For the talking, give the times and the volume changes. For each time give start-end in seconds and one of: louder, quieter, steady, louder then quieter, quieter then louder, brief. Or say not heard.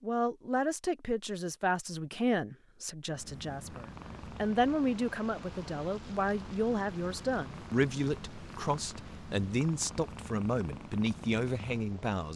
0.0-12.3 steady.